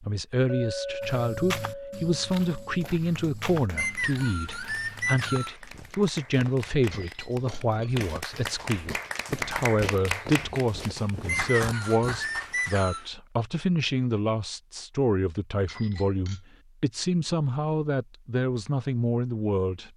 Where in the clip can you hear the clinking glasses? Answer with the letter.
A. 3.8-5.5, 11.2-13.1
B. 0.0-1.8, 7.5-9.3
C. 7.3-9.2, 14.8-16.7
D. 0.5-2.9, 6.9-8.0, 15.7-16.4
D.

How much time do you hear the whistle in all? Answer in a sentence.
The whistle can be heard for 4 seconds in total.